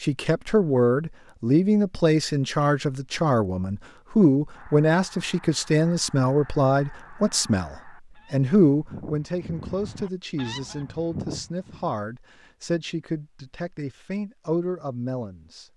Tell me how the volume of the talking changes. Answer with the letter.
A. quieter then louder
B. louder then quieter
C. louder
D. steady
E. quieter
E.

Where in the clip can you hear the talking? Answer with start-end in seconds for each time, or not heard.
0.0-15.7.